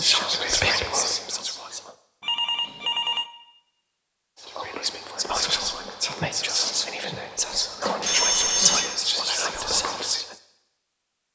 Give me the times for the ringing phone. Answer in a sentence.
The ringing phone can be heard from 2.2 to 3.2 s and from 7.8 to 8.9 s.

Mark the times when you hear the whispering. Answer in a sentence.
You can hear the whispering from 0.0 to 1.9 s and from 4.3 to 10.3 s.